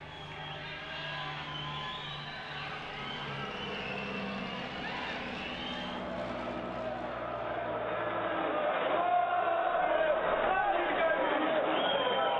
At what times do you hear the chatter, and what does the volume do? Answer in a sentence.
The chatter can be heard from 0.0 to 12.3 s, getting louder.